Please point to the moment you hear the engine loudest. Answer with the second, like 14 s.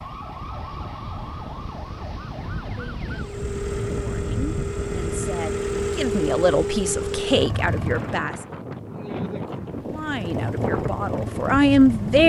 6 s.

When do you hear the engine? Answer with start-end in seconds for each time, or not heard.
3.1-8.3, 9.8-12.2.